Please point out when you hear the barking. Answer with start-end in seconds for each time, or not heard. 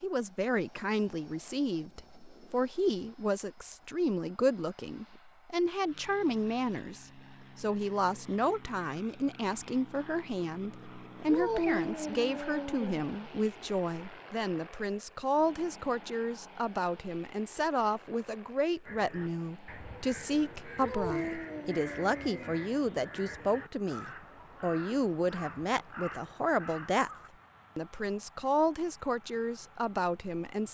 11.2-13.0, 20.8-22.6.